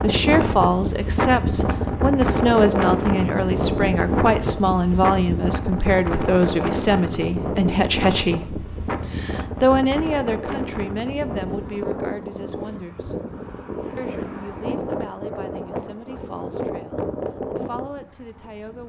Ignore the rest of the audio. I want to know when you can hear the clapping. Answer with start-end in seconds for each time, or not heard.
not heard.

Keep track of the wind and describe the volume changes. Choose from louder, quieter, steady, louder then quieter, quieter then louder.
quieter.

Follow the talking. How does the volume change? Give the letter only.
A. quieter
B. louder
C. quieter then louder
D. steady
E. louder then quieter
A.